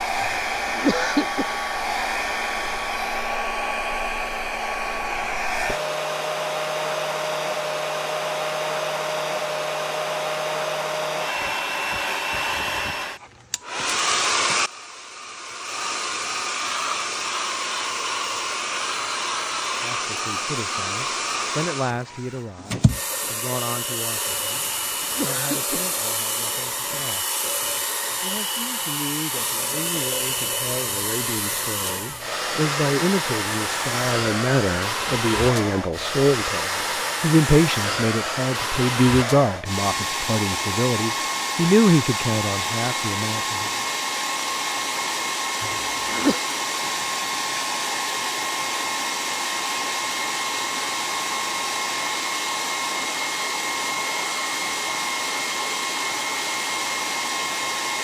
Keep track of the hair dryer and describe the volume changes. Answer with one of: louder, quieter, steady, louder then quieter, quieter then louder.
steady.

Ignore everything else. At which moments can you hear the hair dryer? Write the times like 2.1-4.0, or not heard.
0.0-57.9.